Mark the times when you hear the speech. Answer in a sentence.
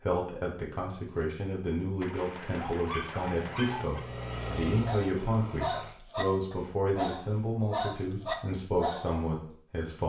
The speech can be heard from 0.0 to 10.0 s.